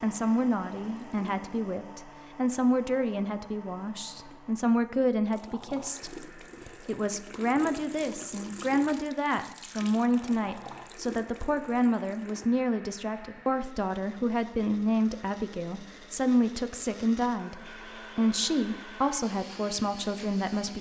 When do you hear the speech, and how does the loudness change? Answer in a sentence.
The speech can be heard from 0.0 to 20.7 s, at a steady volume.